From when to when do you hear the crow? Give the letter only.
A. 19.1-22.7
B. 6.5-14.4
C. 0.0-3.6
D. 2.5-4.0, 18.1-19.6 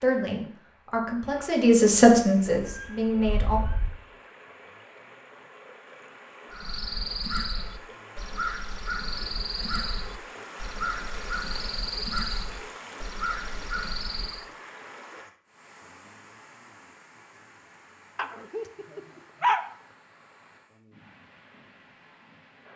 B.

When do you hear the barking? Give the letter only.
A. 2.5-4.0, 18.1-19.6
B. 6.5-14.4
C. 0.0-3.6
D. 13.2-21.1
A.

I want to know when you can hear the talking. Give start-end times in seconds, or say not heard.
0.0-3.6.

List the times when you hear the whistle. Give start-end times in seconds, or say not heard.
not heard.